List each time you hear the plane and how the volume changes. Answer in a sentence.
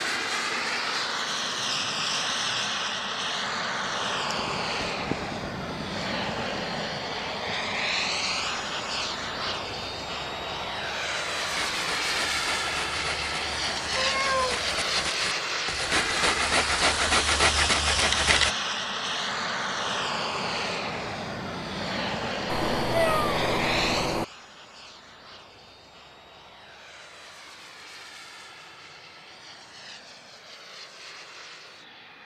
The plane can be heard from 0.0 to 32.2 s, getting quieter.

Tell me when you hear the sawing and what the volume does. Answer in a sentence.
You can hear the sawing from 11.5 to 18.6 s, getting louder.